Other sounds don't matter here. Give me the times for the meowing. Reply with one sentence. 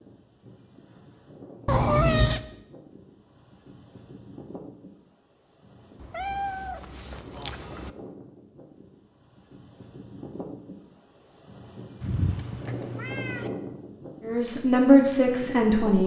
You can hear the meowing from 1.6 to 2.4 s, from 6.0 to 7.9 s and from 12.0 to 13.5 s.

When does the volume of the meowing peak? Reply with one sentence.
The volume of the meowing peaks at 2 seconds.